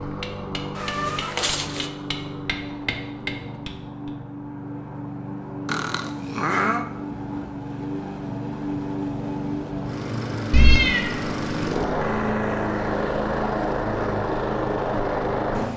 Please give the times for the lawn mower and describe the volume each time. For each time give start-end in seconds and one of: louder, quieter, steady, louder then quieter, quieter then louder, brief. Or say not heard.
0.0-15.7 louder.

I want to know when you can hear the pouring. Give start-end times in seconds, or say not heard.
not heard.